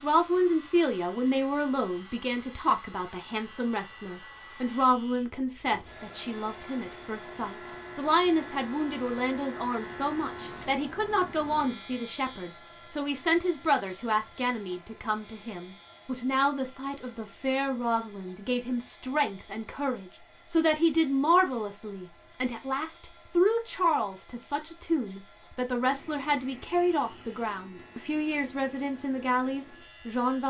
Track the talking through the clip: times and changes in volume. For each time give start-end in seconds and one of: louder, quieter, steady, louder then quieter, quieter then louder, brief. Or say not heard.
0.0-30.4 steady.